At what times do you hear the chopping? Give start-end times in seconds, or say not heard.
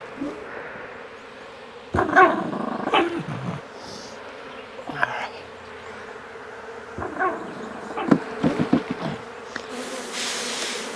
not heard.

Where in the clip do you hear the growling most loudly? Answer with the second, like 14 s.
2 s.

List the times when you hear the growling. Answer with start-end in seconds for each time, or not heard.
1.9-3.6, 7.0-8.2.